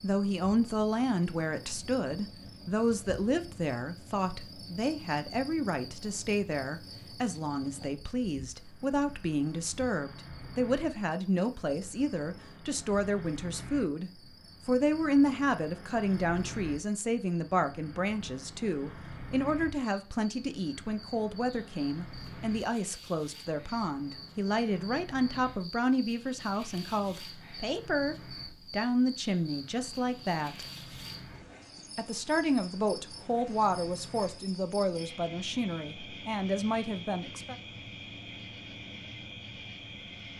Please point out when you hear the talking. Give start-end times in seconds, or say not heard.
0.0-30.6, 31.9-37.5.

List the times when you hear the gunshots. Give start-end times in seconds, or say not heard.
not heard.